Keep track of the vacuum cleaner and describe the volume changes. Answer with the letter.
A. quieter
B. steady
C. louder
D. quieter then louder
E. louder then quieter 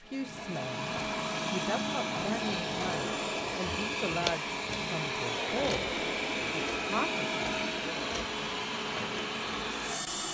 B.